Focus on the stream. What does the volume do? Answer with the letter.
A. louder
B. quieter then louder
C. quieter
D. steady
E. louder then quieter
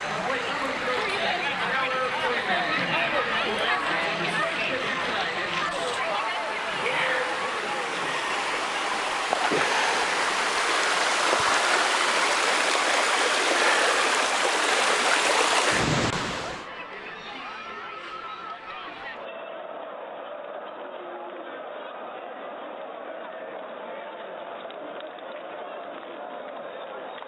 A.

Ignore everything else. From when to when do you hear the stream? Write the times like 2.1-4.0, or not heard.
0.0-16.6.